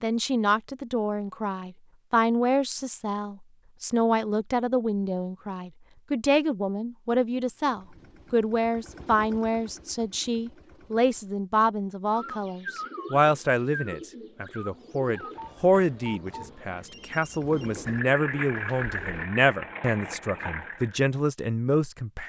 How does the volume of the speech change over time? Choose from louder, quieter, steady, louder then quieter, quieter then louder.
steady.